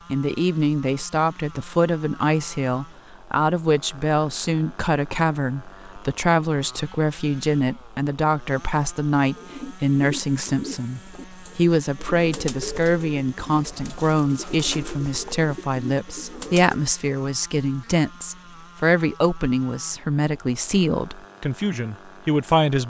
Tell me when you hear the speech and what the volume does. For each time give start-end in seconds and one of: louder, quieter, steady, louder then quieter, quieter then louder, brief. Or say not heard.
0.1-22.8 steady.